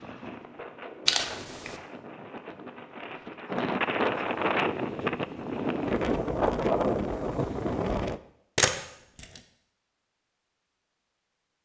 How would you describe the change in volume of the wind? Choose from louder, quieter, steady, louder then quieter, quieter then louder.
louder.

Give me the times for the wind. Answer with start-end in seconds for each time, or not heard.
0.0-8.2.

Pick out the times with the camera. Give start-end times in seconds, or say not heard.
1.1-1.8, 8.6-9.4.